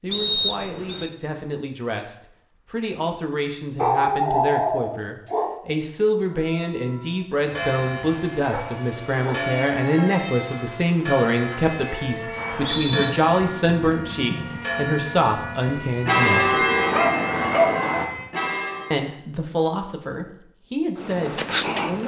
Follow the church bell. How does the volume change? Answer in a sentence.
The volume of the church bell goes up.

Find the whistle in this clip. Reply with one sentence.
You can hear the whistle from 0.1 to 1.1 s and from 12.3 to 13.1 s.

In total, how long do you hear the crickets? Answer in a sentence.
You can hear the crickets for 22 seconds altogether.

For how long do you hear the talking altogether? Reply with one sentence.
The talking can be heard for 20 seconds in total.